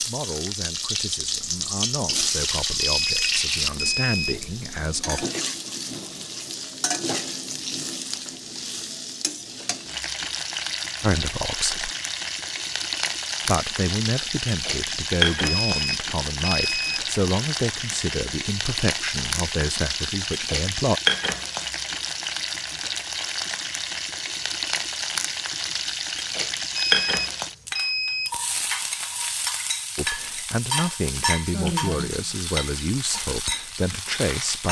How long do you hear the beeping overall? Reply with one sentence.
The beeping can be heard for 5 seconds in total.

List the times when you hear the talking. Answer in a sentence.
You can hear the talking from 0.0 to 5.2 s, from 11.0 to 11.9 s, from 13.4 to 21.0 s and from 29.9 to 34.6 s.